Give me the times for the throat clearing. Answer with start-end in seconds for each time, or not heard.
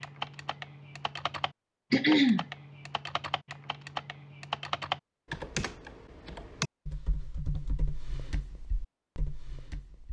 1.9-2.5.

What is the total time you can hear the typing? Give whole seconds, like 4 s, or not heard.
10 s.